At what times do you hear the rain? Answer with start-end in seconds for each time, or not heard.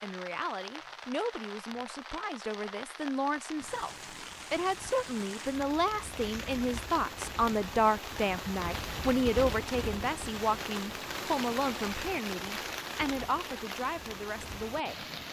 0.0-15.2.